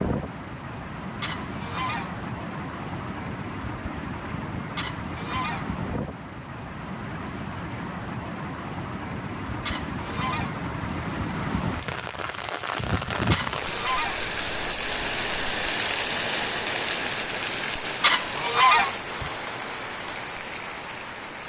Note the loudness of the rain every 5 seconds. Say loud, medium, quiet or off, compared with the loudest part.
medium, medium, loud, loud, medium.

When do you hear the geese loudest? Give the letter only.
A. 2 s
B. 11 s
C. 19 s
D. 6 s
C.